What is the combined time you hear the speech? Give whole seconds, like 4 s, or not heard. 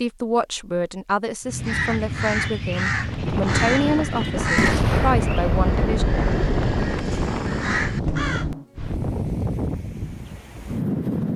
6 s.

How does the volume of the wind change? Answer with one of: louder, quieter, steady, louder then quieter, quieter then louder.
steady.